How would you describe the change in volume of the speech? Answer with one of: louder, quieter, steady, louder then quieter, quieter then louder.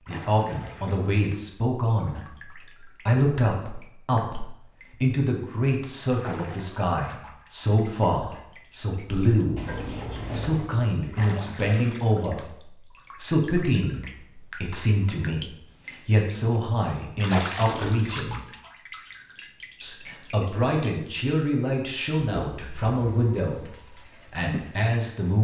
steady.